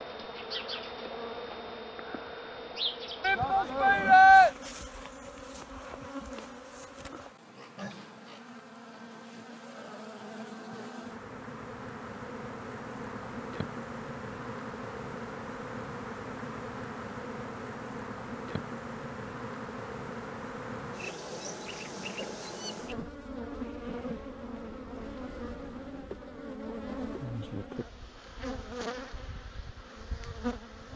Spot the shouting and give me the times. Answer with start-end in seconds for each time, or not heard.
3.2-4.5.